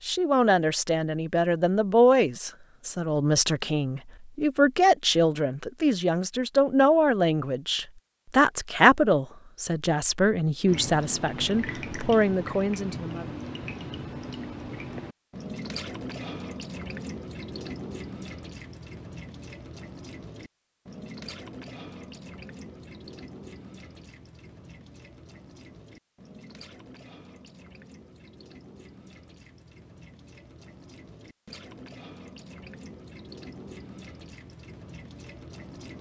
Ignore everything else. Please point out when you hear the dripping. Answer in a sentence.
You can hear the dripping from 10.7 to 35.9 s.